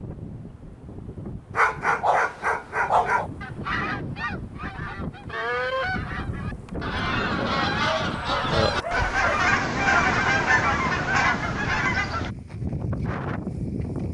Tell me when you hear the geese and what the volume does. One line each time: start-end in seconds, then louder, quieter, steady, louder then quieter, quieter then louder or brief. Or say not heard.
2.9-12.3 louder.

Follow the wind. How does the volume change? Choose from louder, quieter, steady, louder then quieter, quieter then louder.
louder.